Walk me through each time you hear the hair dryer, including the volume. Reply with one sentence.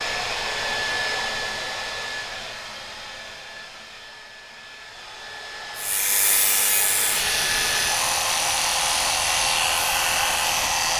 You can hear the hair dryer from 0.0 to 10.9 s, getting quieter then louder.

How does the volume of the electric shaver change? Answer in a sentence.
The volume of the electric shaver stays about the same.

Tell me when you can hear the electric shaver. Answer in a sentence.
The electric shaver can be heard from 5.8 to 10.9 s.